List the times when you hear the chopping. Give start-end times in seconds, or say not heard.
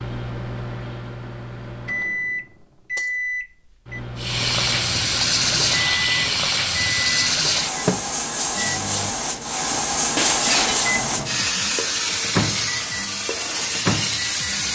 not heard.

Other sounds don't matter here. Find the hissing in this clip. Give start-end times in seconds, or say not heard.
4.2-14.7.